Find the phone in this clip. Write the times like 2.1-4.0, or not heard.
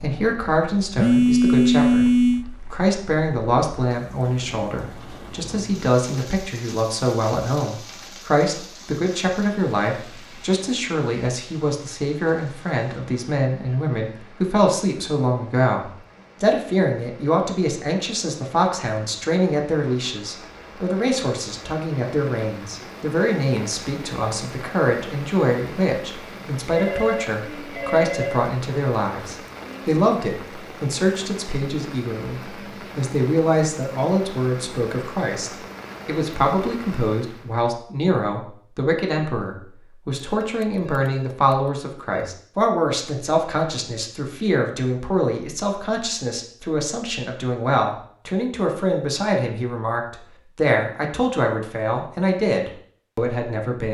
0.9-2.5, 26.7-28.4, 40.1-42.3.